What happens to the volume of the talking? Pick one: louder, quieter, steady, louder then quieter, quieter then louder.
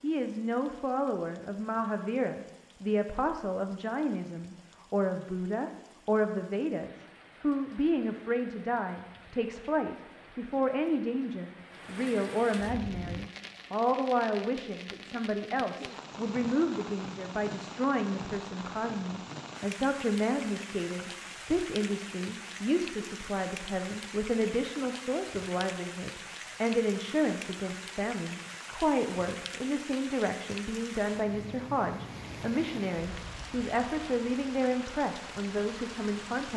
steady.